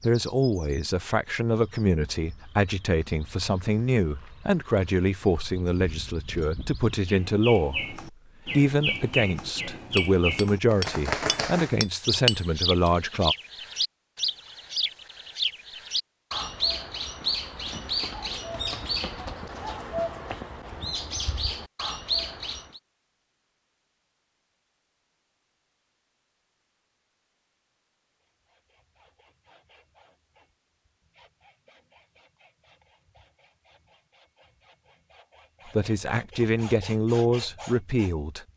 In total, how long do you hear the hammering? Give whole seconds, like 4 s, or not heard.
3 s.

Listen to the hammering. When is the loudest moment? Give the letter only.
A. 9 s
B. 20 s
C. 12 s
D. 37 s
C.